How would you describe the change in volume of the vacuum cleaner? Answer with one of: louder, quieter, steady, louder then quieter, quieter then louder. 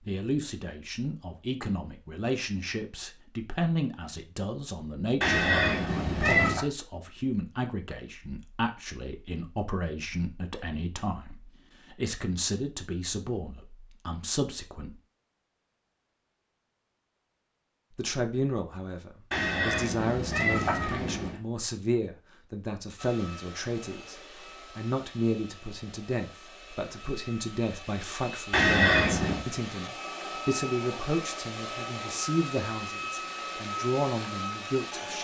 louder.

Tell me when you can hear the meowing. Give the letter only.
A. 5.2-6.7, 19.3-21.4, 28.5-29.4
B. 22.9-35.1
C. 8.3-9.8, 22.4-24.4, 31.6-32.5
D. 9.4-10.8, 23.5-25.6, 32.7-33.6
A.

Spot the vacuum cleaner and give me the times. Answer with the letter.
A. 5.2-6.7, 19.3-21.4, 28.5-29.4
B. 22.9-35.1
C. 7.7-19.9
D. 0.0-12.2
B.